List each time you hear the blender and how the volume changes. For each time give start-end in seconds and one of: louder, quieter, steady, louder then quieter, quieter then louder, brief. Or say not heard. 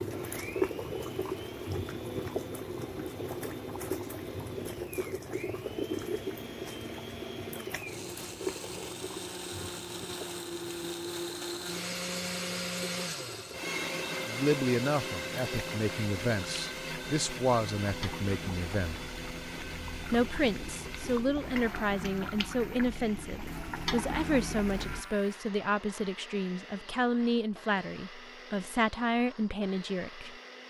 0.0-30.6 louder then quieter.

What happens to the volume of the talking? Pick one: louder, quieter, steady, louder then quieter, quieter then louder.
steady.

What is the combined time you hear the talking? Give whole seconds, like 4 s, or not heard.
15 s.